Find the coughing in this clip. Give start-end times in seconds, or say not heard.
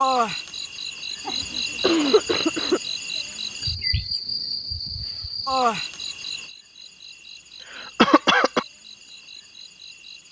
1.2-2.8, 7.3-8.7.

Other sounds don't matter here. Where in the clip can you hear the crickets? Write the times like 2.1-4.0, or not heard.
0.0-10.2.